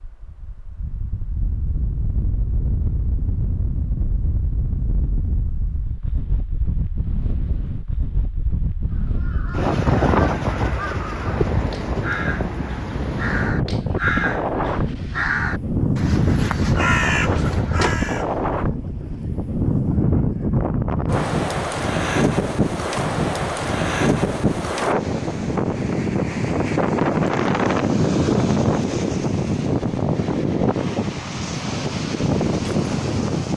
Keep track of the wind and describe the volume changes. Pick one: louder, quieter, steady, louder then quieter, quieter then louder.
louder.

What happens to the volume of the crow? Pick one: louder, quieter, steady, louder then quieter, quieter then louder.
louder.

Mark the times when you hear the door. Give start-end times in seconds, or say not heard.
17.3-17.9.